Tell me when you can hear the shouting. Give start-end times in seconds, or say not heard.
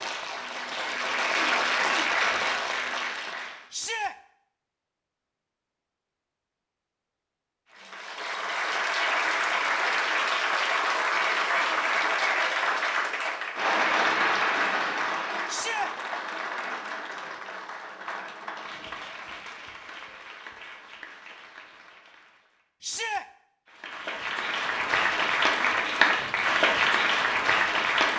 3.7-4.2, 15.4-15.9, 22.8-23.2.